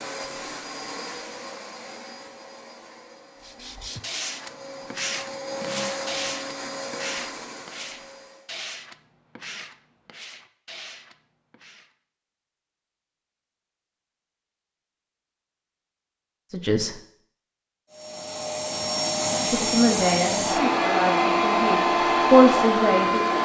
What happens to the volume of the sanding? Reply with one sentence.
The loudness of the sanding goes down.